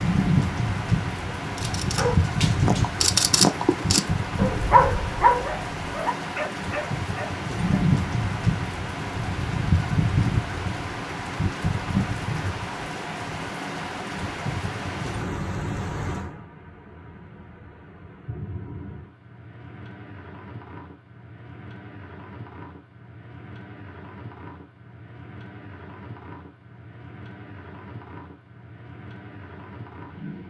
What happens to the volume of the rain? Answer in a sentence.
The volume of the rain goes down.